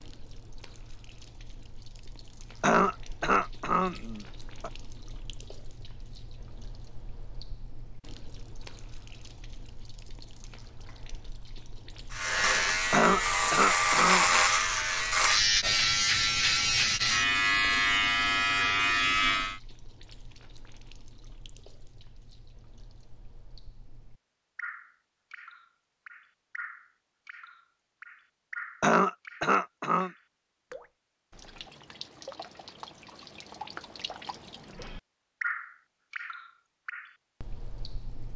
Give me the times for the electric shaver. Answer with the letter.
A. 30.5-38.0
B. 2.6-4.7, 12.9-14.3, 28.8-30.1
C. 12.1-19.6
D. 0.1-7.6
C.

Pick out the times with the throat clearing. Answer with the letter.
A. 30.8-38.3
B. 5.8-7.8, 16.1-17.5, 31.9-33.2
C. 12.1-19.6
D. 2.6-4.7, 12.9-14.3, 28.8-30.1
D.